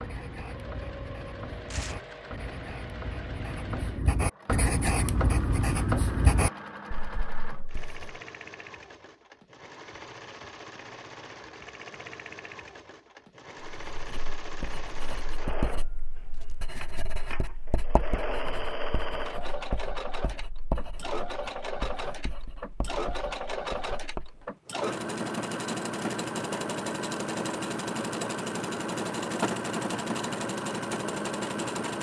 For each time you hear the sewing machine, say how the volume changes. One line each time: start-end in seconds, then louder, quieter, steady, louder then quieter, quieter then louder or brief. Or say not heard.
0.0-31.9 louder.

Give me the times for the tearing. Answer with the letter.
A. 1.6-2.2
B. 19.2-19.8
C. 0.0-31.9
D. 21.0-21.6
A.